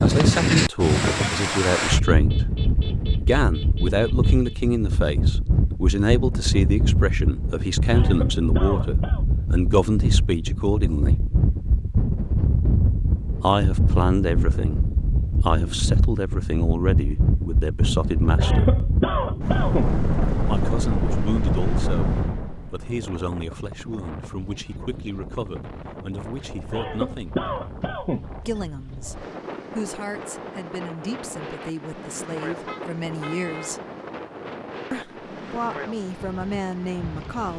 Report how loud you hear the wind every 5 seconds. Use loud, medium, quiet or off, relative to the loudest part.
loud, loud, loud, loud, medium, quiet, quiet, quiet.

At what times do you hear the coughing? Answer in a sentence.
The coughing can be heard from 7.9 to 9.2 s, from 18.4 to 19.9 s and from 26.7 to 28.3 s.